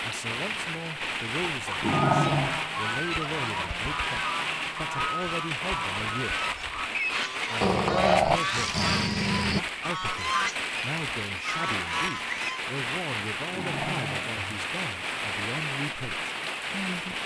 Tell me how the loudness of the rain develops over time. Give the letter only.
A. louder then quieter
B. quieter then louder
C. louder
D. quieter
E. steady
E.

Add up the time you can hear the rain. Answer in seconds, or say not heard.
17 s.